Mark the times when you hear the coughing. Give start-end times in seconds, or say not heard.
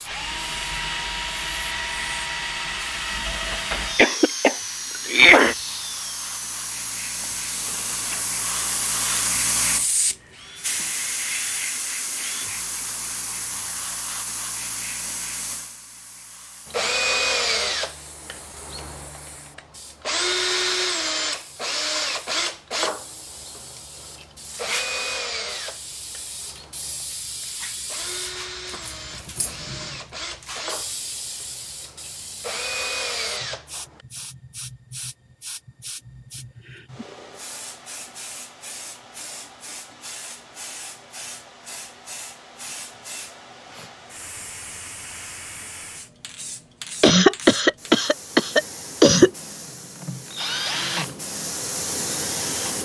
4.0-5.5, 47.0-49.3.